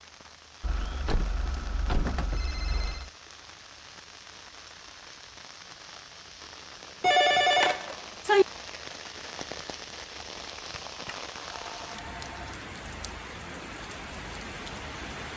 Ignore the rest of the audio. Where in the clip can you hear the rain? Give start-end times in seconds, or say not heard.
0.0-15.3.